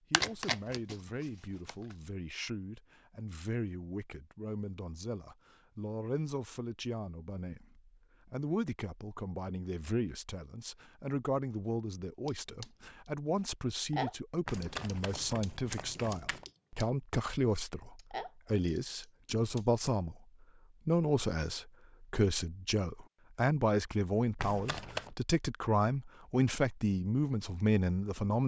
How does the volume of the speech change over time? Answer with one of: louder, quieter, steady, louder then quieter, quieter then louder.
louder.